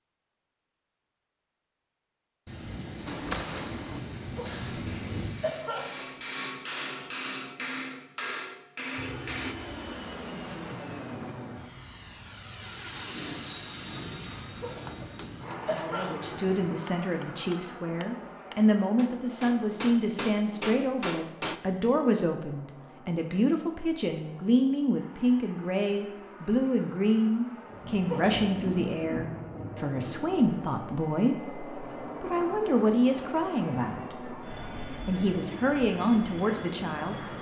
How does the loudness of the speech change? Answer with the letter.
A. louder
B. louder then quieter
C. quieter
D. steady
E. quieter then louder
D.